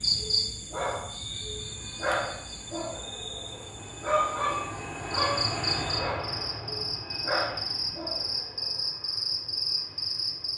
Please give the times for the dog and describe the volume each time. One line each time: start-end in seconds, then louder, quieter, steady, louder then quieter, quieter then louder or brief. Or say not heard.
0.1-8.8 louder then quieter.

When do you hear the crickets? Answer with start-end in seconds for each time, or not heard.
0.0-10.5.